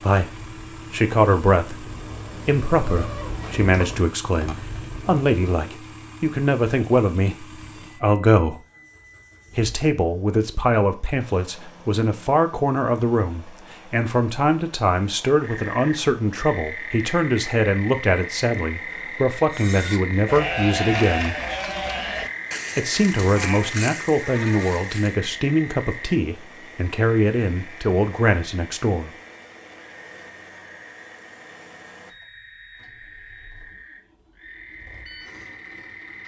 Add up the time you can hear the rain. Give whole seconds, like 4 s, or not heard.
not heard.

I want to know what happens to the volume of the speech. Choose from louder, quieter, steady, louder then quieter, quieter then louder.
steady.